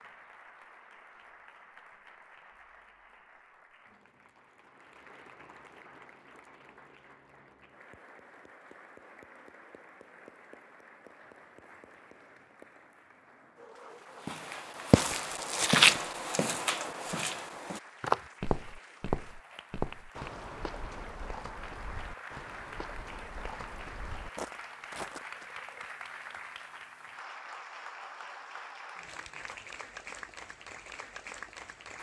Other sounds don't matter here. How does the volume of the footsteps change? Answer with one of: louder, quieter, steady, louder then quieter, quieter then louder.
quieter.